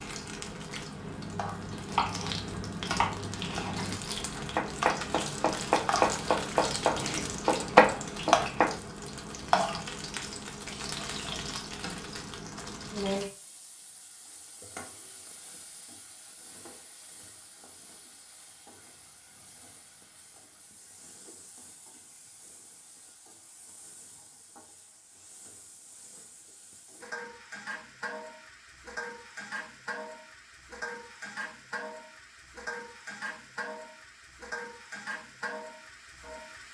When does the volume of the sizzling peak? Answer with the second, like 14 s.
8 s.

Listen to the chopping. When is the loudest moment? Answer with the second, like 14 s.
8 s.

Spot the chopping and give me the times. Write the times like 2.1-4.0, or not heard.
0.9-8.8.